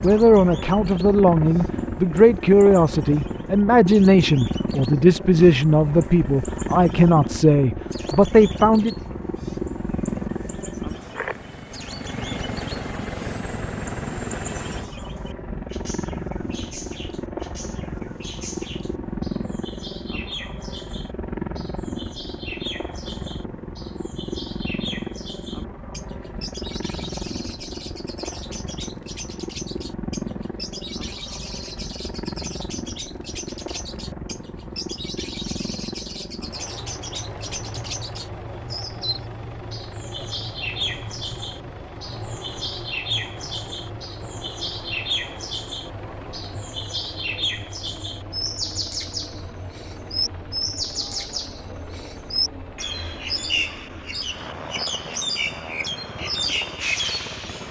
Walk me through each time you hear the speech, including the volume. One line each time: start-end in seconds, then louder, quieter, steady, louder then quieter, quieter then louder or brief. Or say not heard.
0.0-8.9 steady.